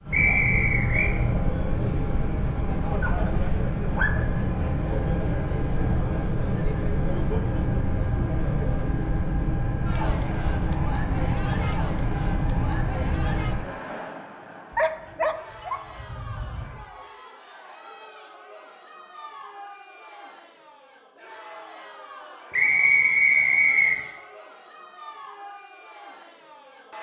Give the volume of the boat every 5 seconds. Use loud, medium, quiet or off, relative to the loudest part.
loud, loud, loud, off, off, off.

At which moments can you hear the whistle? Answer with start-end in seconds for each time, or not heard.
0.1-1.1, 22.5-23.9.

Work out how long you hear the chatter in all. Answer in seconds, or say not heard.
27 s.